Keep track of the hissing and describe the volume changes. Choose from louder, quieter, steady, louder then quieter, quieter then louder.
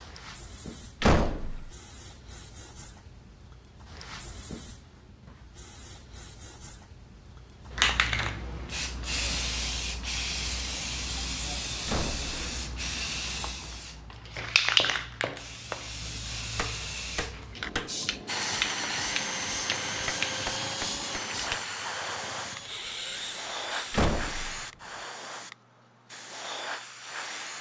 louder then quieter.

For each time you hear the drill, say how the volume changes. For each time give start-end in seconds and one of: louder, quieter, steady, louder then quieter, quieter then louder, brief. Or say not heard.
18.2-25.1 quieter.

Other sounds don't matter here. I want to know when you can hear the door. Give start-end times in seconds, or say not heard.
1.0-1.7, 11.8-12.3, 23.9-24.6.